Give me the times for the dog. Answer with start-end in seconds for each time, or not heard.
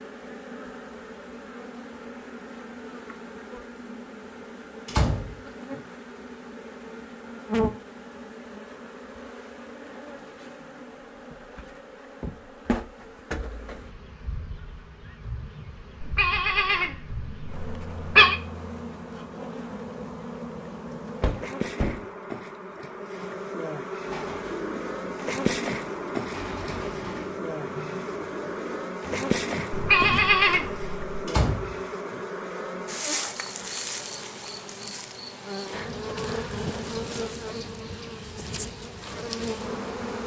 not heard.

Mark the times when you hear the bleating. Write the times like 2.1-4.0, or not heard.
16.0-18.4, 29.7-31.2.